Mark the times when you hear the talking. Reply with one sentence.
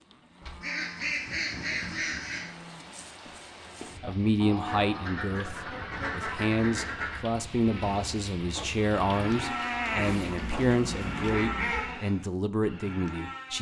The talking can be heard from 4.0 to 13.5 s.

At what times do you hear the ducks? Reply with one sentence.
The ducks can be heard from 0.6 to 2.5 s, from 4.7 to 7.2 s and from 9.9 to 11.9 s.